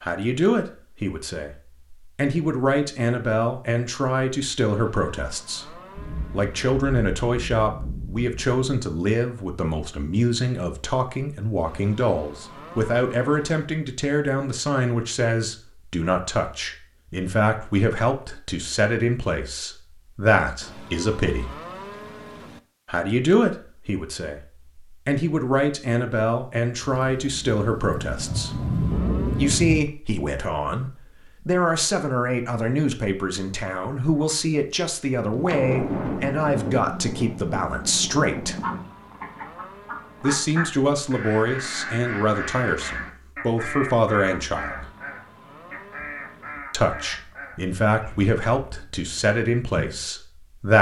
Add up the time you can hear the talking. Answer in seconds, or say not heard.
45 s.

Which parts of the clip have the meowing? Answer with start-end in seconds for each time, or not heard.
not heard.